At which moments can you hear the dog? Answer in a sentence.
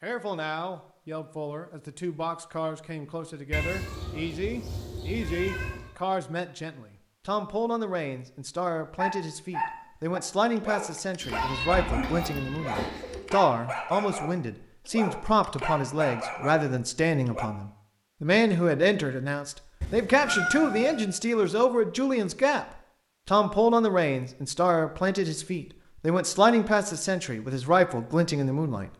You can hear the dog from 8.9 to 17.5 s.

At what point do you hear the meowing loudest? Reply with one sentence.
The loudest moment of the meowing is at 20 seconds.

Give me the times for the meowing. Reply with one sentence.
You can hear the meowing from 3.5 to 5.9 s, from 11.2 to 13.2 s and from 19.8 to 21.1 s.